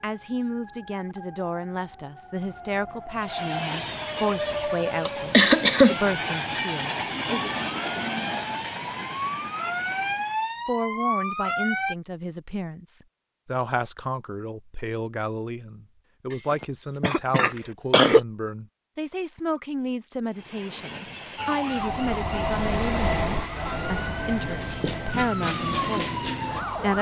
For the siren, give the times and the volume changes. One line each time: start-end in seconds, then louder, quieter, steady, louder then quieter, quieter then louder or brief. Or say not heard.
0.0-11.9 louder
21.4-26.9 quieter then louder.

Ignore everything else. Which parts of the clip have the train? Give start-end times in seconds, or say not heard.
3.1-10.6, 20.3-26.9.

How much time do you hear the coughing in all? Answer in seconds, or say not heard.
3 s.